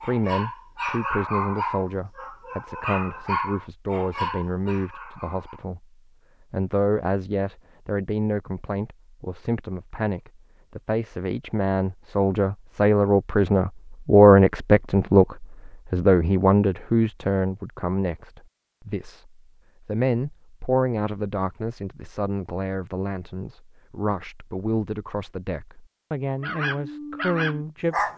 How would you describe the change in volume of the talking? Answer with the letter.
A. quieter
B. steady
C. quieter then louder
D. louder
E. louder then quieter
E.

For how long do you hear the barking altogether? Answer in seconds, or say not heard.
7 s.